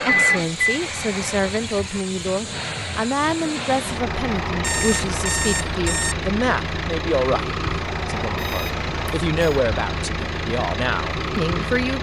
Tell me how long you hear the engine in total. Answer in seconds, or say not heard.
12 s.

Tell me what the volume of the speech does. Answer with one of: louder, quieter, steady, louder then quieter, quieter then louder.
steady.